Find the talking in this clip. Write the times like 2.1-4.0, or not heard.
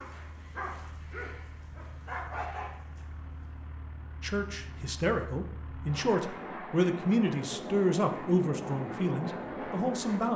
4.2-10.3.